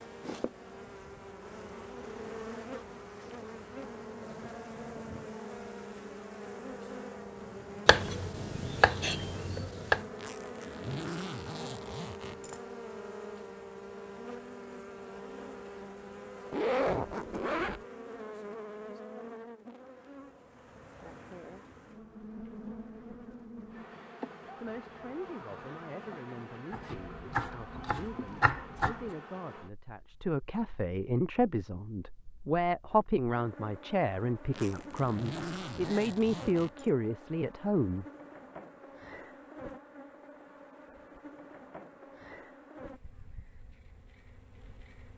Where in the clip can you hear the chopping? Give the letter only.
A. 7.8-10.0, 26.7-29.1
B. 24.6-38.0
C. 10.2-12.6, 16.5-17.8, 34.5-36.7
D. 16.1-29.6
A.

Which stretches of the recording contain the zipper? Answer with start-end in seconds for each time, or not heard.
10.2-12.6, 16.5-17.8, 34.5-36.7.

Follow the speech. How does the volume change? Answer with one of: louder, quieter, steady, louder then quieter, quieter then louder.
louder.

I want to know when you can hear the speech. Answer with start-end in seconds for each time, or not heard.
24.6-38.0.